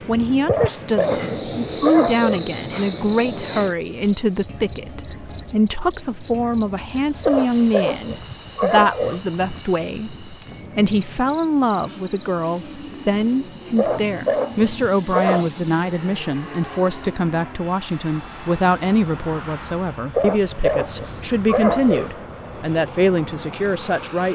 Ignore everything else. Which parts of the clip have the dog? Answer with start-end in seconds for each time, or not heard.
0.5-2.5, 7.2-9.2, 13.8-15.5, 20.1-22.1.